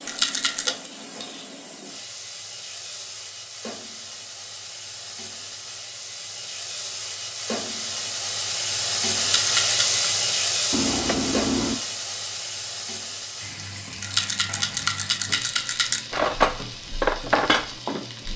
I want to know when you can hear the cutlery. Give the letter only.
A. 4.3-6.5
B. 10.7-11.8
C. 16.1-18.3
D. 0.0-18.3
C.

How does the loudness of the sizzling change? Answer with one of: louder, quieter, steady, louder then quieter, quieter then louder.
louder then quieter.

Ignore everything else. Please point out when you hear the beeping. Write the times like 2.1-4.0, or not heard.
10.7-11.8.